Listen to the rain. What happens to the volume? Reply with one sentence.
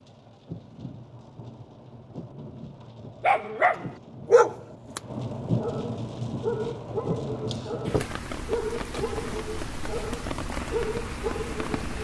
The loudness of the rain goes up.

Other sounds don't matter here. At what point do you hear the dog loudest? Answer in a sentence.
The loudest moment of the dog is at 4 seconds.